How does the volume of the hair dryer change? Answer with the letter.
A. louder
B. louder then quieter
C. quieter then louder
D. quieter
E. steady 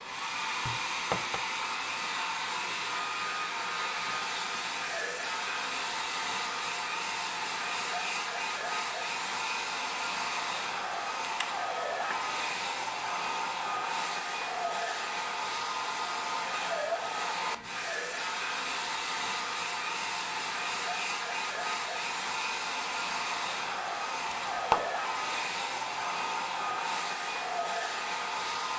E.